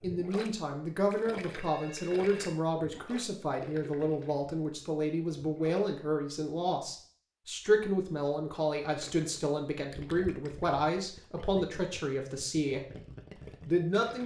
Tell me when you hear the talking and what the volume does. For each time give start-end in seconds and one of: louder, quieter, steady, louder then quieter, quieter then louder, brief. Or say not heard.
0.0-12.8 steady
13.7-14.2 brief.